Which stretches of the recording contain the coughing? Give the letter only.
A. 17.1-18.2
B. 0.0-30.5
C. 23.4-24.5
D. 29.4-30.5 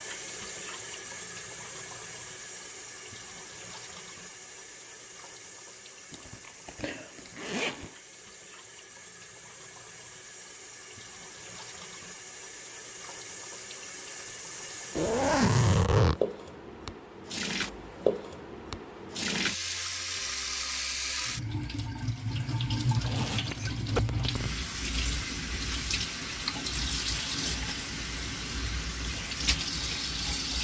C.